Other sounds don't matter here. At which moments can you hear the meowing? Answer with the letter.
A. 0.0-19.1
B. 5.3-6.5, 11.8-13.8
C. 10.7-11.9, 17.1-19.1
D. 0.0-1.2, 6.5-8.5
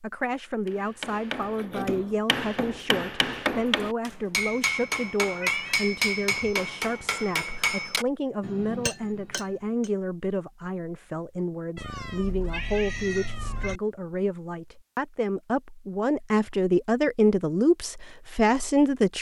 B.